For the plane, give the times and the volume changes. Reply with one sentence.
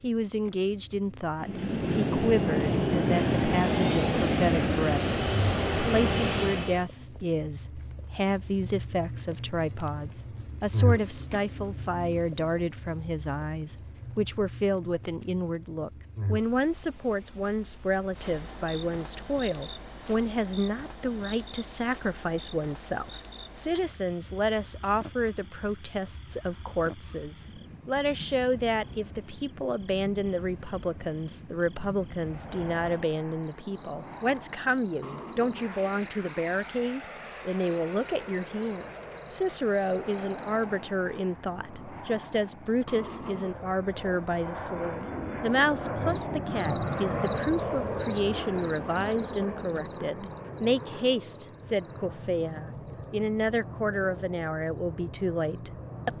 The plane can be heard from 1.4 to 6.8 s, at a steady volume; and from 32.1 to 56.1 s, getting louder then quieter.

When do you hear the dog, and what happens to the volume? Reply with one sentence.
You can't hear the dog here.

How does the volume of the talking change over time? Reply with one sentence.
The volume of the talking stays about the same.